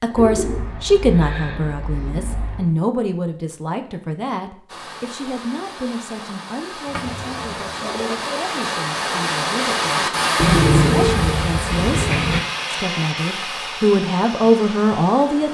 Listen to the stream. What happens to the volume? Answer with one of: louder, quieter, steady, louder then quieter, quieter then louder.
louder then quieter.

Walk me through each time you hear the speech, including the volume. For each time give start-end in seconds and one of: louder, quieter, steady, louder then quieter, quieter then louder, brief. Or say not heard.
0.0-15.4 quieter then louder.